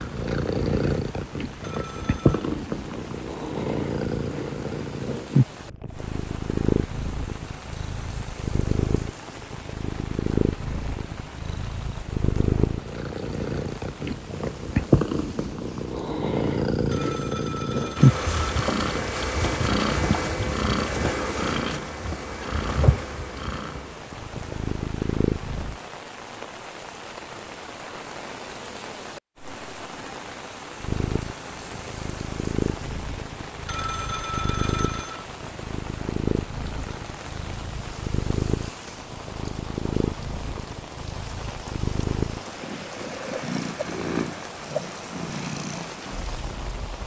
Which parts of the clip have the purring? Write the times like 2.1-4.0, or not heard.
0.0-25.8, 30.8-47.0.